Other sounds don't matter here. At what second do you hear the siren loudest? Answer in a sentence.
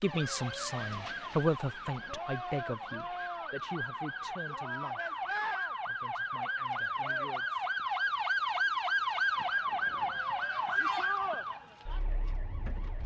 The loudest moment of the siren is at 9 seconds.